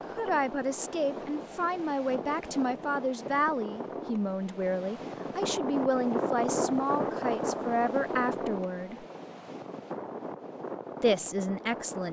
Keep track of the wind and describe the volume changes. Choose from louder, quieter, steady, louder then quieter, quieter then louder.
louder then quieter.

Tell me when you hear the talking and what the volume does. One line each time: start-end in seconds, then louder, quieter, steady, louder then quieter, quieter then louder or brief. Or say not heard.
0.1-9.1 steady
11.0-12.0 brief.